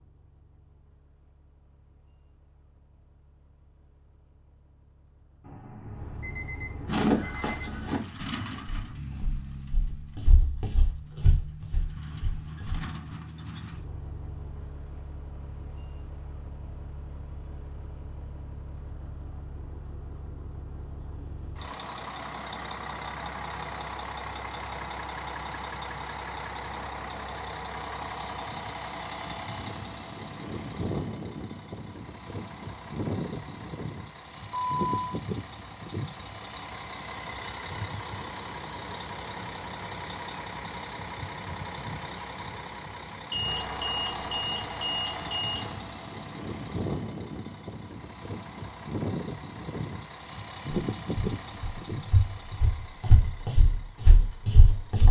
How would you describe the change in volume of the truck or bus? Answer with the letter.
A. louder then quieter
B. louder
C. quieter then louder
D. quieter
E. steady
B.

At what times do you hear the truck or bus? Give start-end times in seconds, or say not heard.
0.0-55.0.